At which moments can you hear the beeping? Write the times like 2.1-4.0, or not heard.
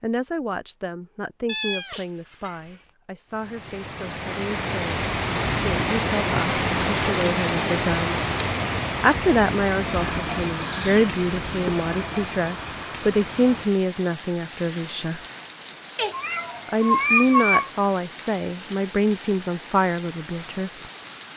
not heard.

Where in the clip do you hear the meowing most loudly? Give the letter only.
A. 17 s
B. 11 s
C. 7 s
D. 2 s
A.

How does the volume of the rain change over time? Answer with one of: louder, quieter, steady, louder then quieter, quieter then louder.
quieter.